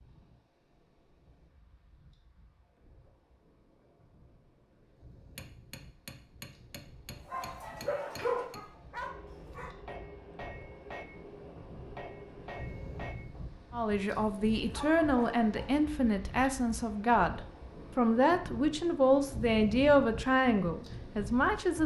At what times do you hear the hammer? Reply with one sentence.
You can hear the hammer from 5.3 to 13.2 s.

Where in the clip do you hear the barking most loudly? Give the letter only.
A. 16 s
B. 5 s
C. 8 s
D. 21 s
C.